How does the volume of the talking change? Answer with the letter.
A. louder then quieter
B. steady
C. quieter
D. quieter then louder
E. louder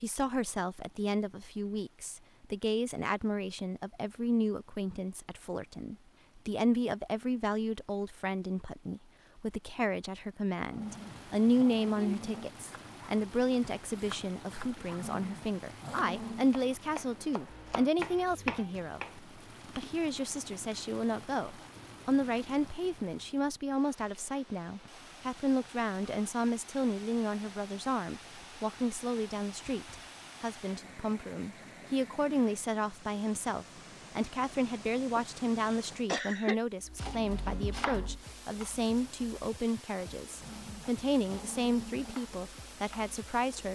B.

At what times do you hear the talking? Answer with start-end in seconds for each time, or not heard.
0.0-43.7.